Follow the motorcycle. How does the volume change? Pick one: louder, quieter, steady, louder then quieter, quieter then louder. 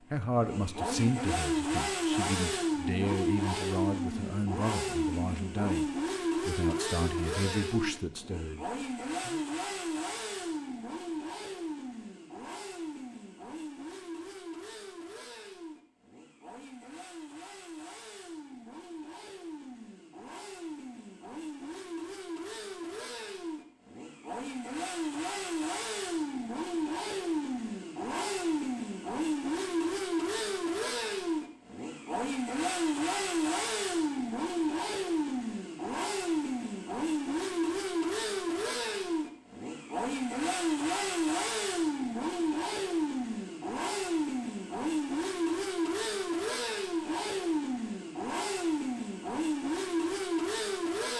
quieter then louder.